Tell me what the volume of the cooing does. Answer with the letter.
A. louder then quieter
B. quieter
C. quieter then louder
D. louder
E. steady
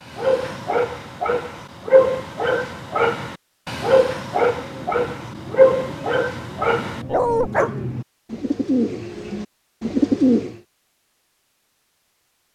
D.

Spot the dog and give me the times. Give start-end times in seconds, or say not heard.
0.1-7.8.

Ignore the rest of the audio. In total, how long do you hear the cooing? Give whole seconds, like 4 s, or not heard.
6 s.